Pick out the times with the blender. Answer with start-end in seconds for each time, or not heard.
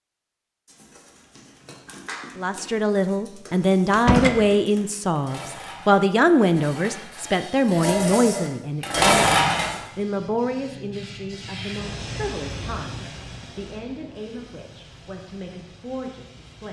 not heard.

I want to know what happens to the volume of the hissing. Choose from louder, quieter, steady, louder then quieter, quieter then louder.
louder then quieter.